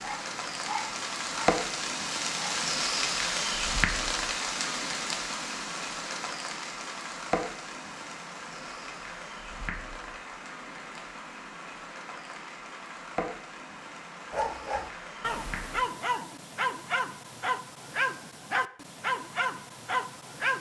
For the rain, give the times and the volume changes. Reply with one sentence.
The rain can be heard from 0.0 to 15.8 s, getting quieter.